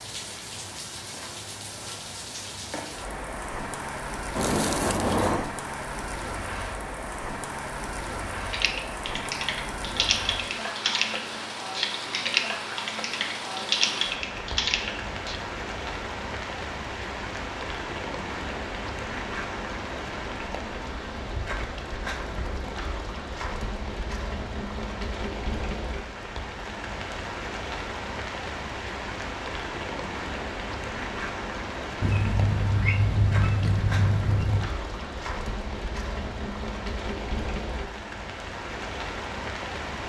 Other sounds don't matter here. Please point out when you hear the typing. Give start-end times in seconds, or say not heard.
8.5-15.4.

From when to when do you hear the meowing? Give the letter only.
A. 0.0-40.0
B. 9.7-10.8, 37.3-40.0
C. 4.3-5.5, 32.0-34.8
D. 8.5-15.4
C.